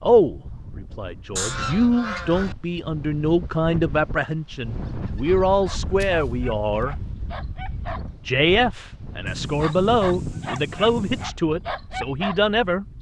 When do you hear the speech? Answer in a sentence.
You can hear the speech from 0.0 to 7.0 s and from 8.2 to 12.8 s.